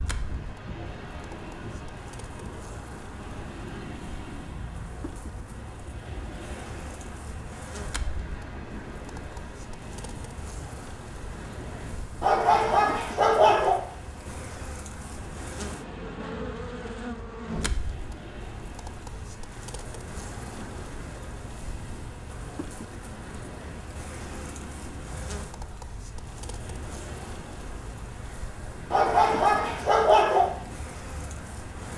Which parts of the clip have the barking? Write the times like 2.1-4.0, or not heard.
12.2-13.8, 28.9-30.5.